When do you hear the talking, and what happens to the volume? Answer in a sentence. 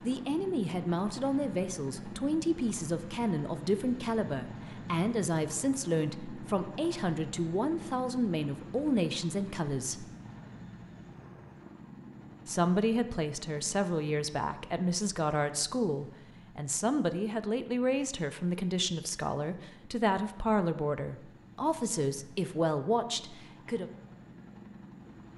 You can hear the talking from 0.0 to 10.1 s, at a steady volume; and from 12.4 to 23.9 s, at a steady volume.